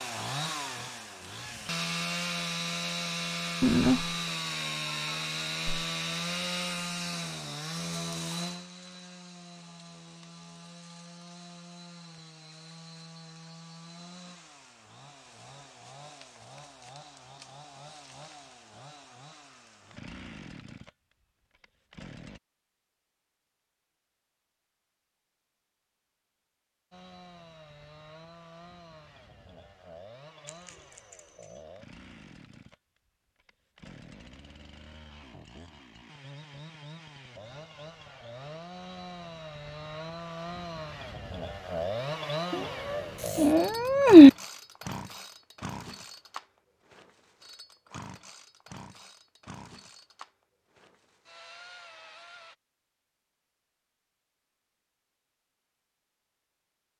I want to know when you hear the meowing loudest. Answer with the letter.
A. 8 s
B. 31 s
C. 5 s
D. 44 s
D.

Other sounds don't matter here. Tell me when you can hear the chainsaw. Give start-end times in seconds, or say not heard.
0.0-22.4, 26.9-52.5.